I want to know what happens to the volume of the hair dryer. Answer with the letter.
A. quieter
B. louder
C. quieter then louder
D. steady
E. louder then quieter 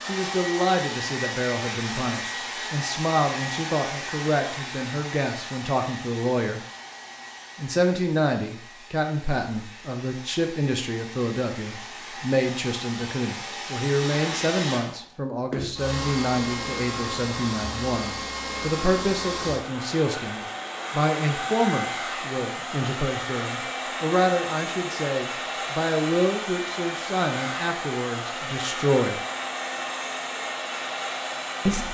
C.